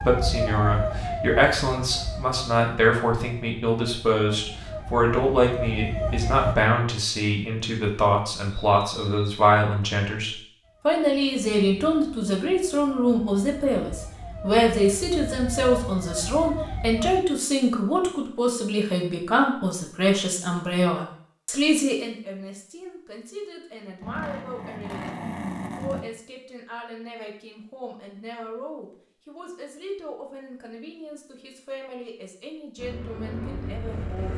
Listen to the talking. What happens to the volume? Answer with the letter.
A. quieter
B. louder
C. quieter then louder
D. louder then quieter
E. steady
A.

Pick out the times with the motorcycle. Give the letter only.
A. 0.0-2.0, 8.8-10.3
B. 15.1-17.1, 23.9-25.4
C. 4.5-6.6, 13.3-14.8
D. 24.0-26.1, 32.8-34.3
D.